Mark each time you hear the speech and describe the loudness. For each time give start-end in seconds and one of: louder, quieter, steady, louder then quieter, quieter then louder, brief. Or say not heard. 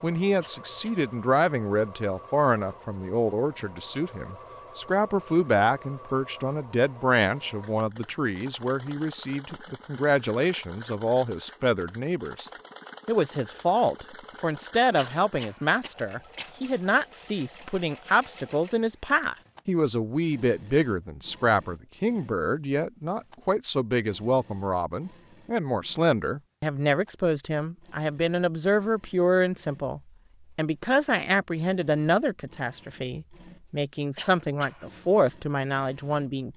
0.0-36.5 steady.